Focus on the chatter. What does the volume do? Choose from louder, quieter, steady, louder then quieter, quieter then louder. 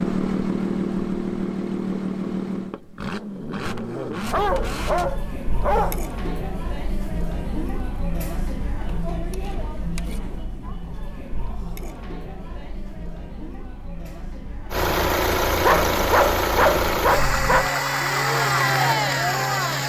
quieter then louder.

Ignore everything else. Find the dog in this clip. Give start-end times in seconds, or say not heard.
3.1-6.0, 15.6-17.6.